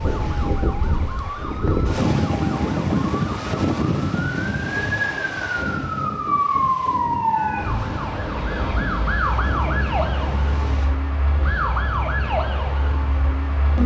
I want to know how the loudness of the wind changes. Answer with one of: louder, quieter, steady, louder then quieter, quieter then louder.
quieter.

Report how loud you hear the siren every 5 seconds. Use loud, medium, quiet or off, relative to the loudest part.
medium, loud, loud.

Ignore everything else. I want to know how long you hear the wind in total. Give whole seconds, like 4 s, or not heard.
11 s.